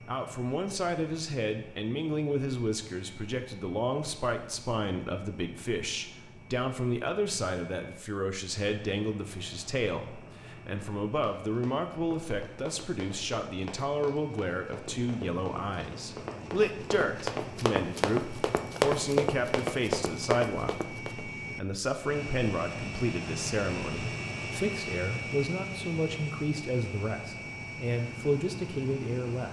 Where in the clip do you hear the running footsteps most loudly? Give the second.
19 s.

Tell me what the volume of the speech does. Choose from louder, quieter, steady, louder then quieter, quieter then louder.
steady.